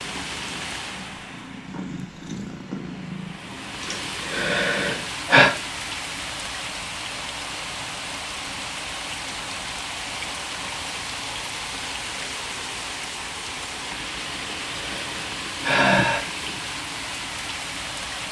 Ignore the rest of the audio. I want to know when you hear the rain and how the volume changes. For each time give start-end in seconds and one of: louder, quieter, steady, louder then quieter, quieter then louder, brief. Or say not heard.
0.0-18.2 louder.